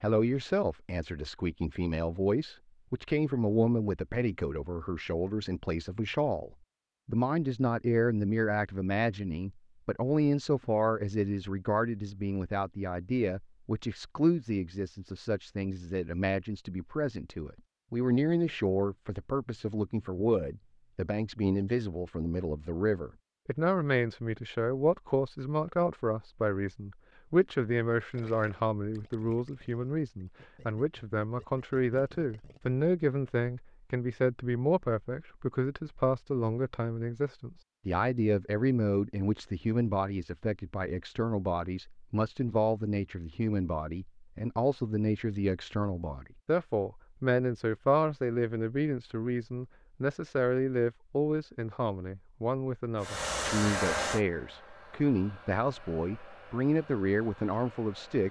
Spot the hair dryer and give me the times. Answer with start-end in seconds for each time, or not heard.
53.0-58.2.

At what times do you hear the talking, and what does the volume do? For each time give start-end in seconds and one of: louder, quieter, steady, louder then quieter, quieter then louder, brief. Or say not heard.
0.0-58.2 steady.